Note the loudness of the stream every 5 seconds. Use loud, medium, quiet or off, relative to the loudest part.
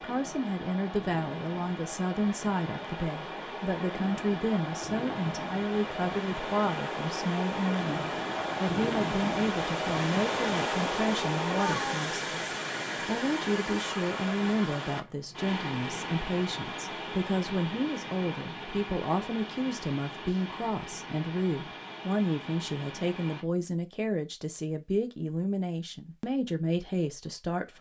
medium, loud, loud, medium, medium, off.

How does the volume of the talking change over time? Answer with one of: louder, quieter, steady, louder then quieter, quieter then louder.
steady.